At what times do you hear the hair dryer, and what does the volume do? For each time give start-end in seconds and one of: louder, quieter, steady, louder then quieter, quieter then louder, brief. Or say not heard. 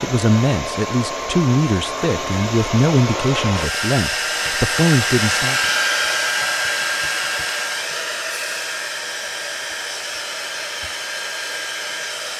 0.0-12.3 louder then quieter.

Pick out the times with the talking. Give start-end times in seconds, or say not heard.
0.0-5.7.